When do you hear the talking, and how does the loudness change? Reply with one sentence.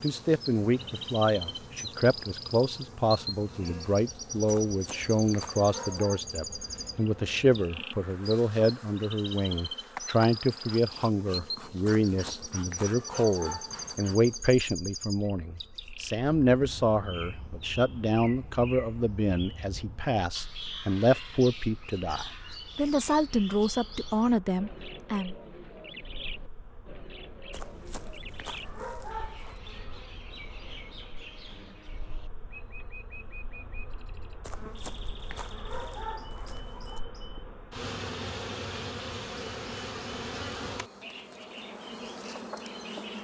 You can hear the talking from 0.0 to 25.4 s, at a steady volume.